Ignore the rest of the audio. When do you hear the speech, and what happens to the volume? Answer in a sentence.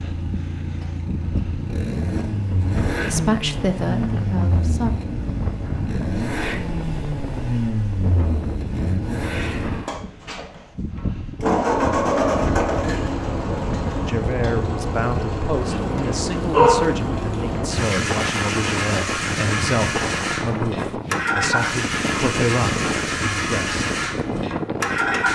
The speech can be heard briefly from 3.1 to 4.9 s; and from 14.1 to 23.8 s, at a steady volume.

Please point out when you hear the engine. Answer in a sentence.
The engine can be heard from 0.0 to 25.3 s.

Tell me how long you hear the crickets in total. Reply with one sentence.
The crickets can't be heard in this clip.